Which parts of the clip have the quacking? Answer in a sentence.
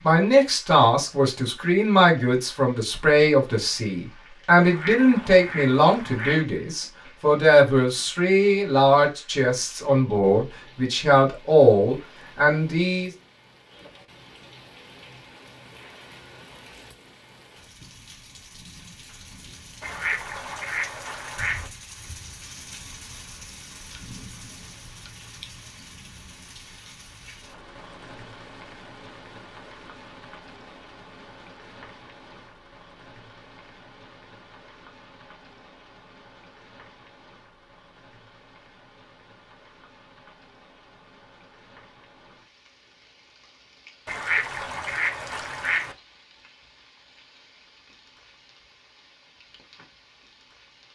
You can hear the quacking from 4.6 to 6.5 s, from 19.8 to 21.7 s and from 44.0 to 46.0 s.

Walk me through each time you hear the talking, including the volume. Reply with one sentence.
You can hear the talking from 0.0 to 13.1 s, at a steady volume.